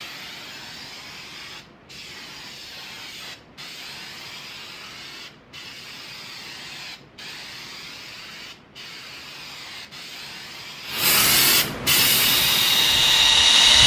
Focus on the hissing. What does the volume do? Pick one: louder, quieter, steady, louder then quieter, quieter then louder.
louder.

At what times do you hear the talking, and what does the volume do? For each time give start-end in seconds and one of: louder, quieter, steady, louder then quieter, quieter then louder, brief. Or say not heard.
not heard.